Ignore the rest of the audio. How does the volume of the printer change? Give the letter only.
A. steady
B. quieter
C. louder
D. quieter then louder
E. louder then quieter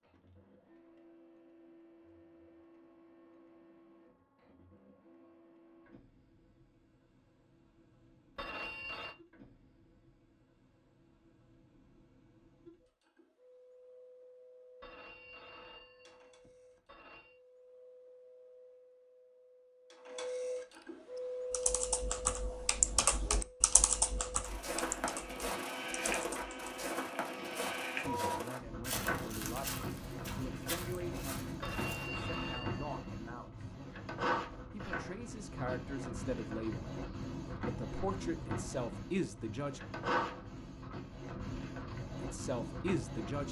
C.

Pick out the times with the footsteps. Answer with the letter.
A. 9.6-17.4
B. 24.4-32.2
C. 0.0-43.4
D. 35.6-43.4
B.